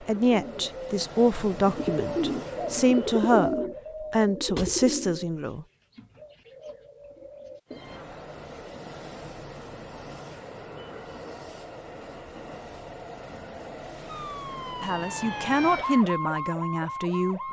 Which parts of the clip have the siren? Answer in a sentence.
You can hear the siren from 14.1 to 17.4 s.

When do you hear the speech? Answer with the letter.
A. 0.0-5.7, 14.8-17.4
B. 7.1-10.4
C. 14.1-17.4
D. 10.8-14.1
A.